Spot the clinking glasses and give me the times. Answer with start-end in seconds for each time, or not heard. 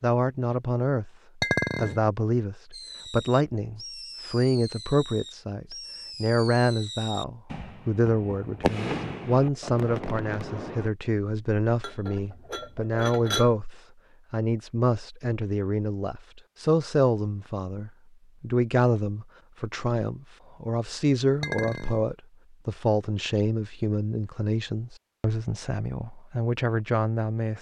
1.4-2.0, 11.8-13.5, 21.4-22.0.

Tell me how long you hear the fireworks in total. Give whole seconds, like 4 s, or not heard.
8 s.